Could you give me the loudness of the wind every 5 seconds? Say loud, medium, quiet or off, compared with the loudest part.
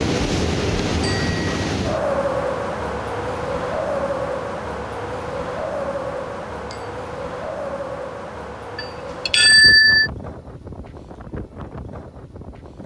loud, medium, quiet.